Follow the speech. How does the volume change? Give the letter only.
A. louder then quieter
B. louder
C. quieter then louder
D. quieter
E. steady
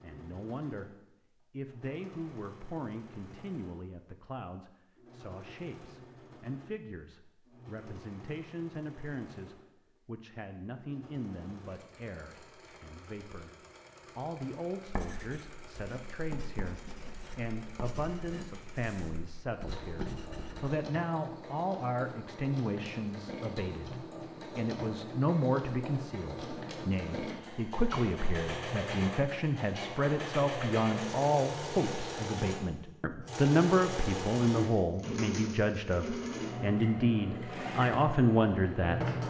B.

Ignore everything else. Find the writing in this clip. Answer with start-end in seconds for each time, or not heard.
14.8-20.8.